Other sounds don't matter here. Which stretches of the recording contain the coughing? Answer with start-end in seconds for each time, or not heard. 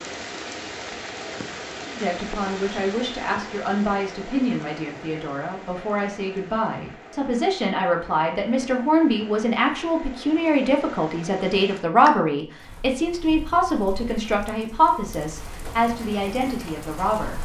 not heard.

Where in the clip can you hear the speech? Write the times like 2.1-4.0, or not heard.
1.9-17.3.